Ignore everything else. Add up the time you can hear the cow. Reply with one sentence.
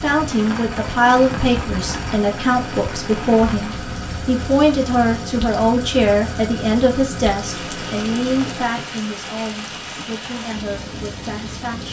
The cow can't be heard in this clip.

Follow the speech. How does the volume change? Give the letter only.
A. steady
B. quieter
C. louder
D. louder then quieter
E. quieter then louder
B.